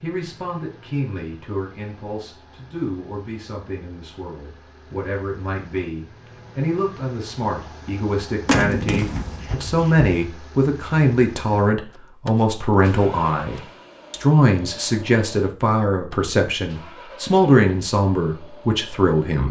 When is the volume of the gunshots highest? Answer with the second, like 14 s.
9 s.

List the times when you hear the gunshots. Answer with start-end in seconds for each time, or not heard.
8.4-10.1.